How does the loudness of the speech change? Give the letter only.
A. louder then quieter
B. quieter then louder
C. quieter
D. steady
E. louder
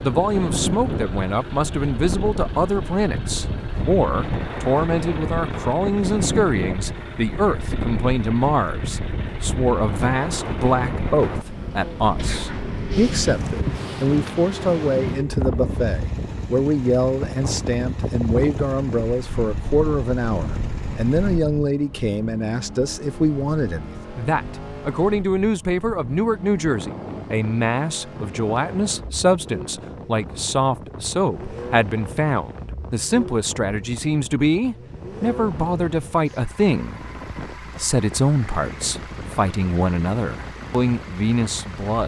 D.